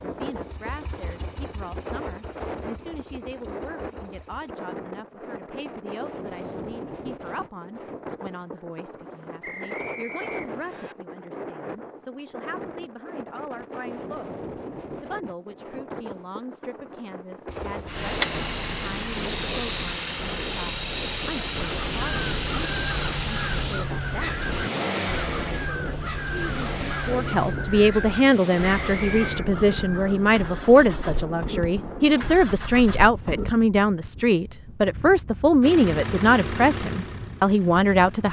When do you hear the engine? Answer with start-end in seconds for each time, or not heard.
0.0-4.5, 17.4-33.5, 35.6-38.2.